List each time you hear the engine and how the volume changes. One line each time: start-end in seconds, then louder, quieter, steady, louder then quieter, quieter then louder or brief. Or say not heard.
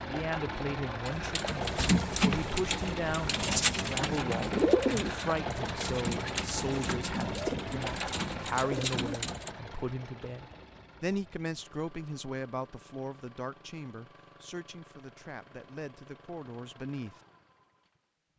0.0-18.3 quieter.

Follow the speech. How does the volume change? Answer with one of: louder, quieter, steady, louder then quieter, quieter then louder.
quieter.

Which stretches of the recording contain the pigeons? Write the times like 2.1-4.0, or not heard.
1.1-9.6.